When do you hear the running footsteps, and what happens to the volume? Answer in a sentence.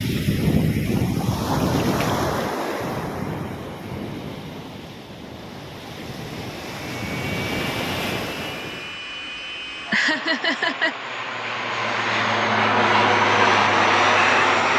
The running footsteps can't be heard in this clip.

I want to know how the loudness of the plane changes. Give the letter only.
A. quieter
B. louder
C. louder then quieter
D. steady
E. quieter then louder
B.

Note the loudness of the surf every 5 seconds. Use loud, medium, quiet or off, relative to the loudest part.
loud, medium, off.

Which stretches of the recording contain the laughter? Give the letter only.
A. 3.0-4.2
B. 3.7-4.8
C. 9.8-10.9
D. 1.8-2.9
C.